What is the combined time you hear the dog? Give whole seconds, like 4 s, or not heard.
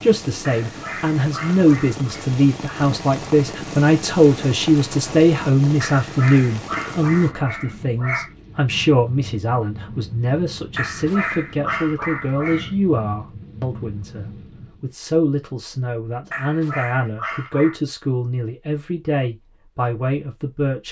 8 s.